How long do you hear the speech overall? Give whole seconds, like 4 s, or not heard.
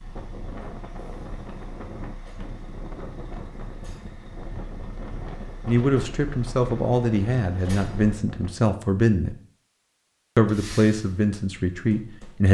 6 s.